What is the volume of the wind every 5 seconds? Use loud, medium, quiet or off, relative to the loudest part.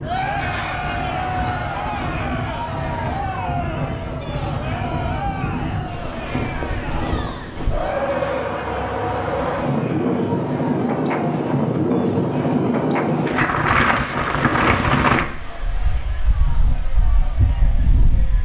medium, medium, loud, medium.